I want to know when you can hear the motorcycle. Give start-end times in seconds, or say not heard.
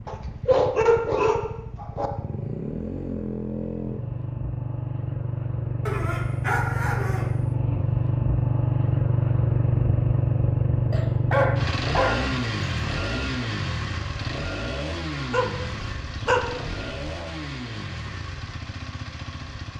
0.0-19.7.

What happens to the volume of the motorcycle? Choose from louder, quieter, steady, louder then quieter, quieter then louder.
louder then quieter.